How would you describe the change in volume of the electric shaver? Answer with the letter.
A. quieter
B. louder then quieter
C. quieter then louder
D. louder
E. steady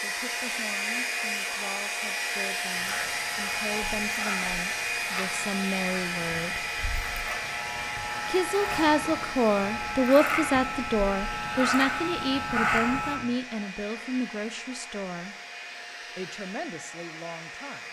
D.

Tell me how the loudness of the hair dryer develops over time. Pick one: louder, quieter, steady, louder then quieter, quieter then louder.
quieter.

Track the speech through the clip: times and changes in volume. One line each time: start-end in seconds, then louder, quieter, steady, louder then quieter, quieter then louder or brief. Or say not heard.
0.0-6.7 louder
8.2-15.3 quieter
16.1-17.8 brief.